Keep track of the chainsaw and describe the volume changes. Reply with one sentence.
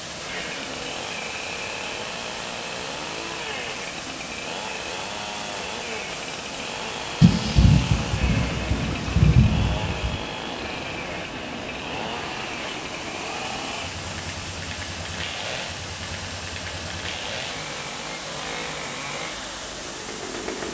The volume of the chainsaw stays about the same.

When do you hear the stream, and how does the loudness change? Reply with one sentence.
The stream can be heard from 0.0 to 20.6 s, at a steady volume.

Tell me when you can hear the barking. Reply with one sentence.
You can't hear the barking here.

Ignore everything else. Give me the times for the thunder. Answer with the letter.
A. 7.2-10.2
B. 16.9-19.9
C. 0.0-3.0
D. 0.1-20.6
A.